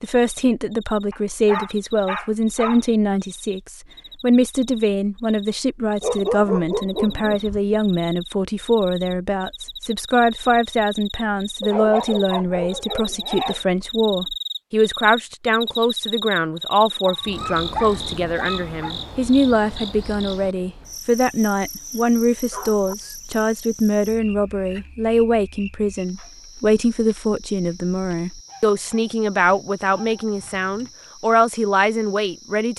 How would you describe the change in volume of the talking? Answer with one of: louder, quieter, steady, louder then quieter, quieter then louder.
steady.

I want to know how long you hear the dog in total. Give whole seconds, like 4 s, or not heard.
10 s.